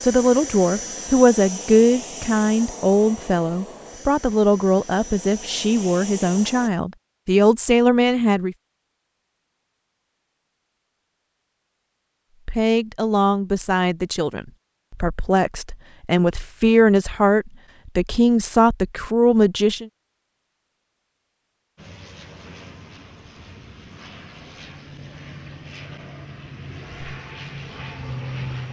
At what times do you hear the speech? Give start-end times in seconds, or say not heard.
0.0-8.6, 12.4-19.9.